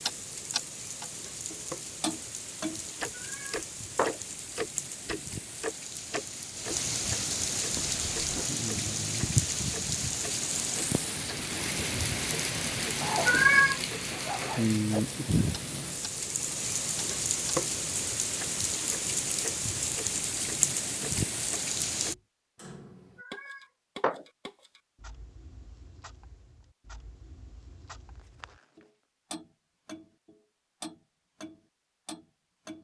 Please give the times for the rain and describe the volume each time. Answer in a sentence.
The rain can be heard from 0.0 to 22.1 s, getting louder.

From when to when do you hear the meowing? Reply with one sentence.
You can hear the meowing from 3.1 to 4.2 s, from 13.2 to 13.8 s and from 23.2 to 24.2 s.